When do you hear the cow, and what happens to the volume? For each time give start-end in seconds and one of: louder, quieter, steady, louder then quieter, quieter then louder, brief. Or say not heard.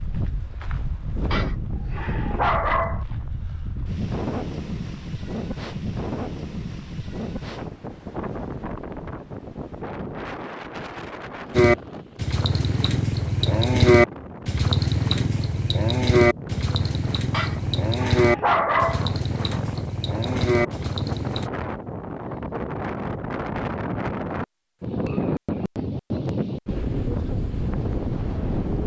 11.6-21.5 louder then quieter.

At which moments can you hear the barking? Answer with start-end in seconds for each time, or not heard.
1.3-3.0, 17.3-19.1.